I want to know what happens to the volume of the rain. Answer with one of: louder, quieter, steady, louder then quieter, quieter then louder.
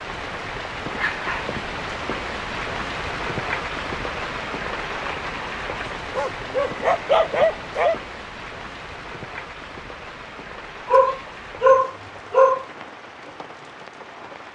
quieter.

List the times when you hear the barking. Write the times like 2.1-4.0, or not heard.
0.9-1.6, 6.0-8.0, 10.8-12.7.